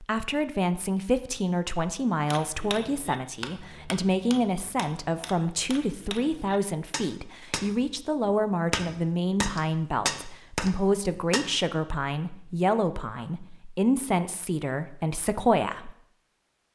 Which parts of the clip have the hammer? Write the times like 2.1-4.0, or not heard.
2.2-11.6.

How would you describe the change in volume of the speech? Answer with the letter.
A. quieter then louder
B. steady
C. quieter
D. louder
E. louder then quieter
B.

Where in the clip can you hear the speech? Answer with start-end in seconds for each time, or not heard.
0.0-15.9.